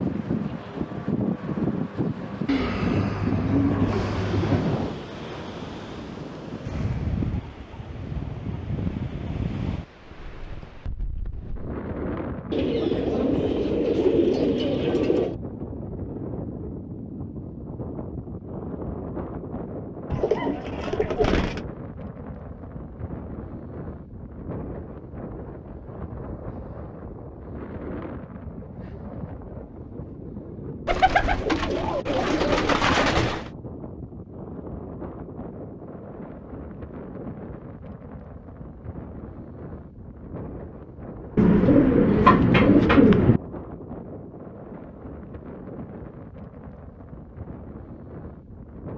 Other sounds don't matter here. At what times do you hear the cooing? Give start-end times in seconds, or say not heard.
2.5-4.7, 12.5-15.3, 20.1-21.6, 30.9-33.5, 41.4-43.4.